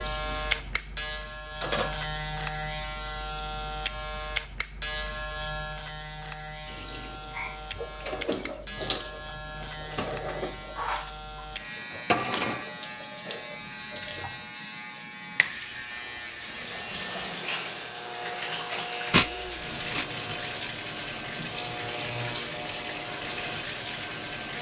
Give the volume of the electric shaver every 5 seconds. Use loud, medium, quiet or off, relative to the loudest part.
loud, medium, medium, medium, medium.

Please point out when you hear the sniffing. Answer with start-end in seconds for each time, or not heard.
19.1-20.1.